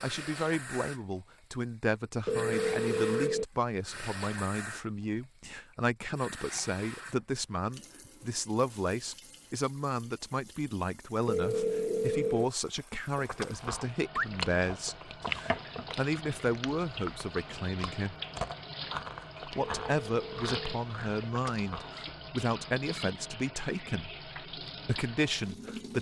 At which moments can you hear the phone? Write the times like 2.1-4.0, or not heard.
2.2-3.5, 11.2-12.4, 19.8-20.8.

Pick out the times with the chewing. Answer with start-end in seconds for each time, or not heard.
13.2-21.9.